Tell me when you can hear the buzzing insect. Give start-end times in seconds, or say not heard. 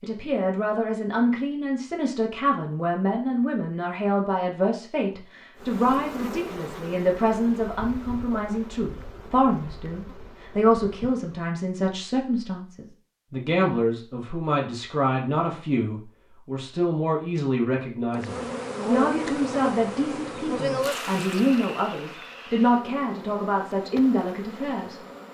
5.5-11.4, 18.1-25.2.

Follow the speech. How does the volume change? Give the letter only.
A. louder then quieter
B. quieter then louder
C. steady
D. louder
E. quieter
C.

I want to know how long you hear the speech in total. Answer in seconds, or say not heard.
25 s.